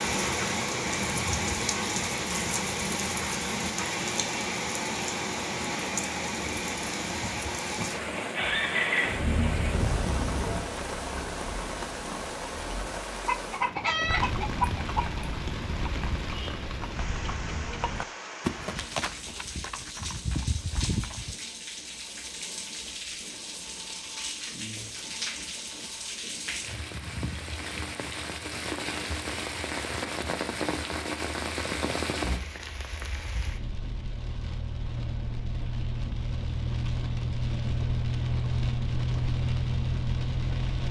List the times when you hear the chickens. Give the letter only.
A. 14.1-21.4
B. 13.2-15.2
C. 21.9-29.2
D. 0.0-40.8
B.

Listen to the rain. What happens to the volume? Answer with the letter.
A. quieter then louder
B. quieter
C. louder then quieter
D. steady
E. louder
A.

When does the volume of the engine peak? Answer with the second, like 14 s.
9 s.